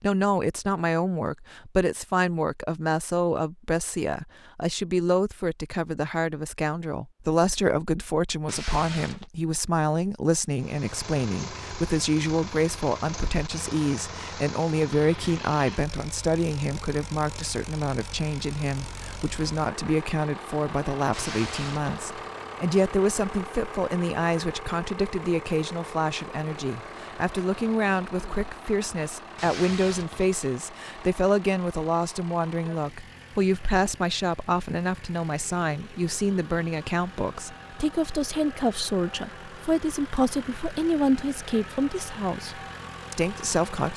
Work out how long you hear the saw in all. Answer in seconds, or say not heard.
not heard.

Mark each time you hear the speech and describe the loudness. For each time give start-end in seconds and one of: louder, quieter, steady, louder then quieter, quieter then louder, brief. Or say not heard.
0.0-43.9 steady.